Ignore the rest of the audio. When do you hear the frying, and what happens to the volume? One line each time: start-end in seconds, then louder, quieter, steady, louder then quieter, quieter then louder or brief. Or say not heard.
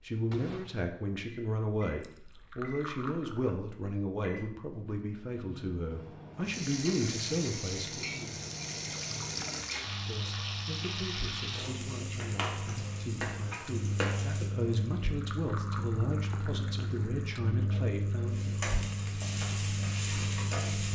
6.5-14.5 steady
18.3-20.8 brief.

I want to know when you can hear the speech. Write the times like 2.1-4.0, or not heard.
0.0-8.3, 10.1-18.6.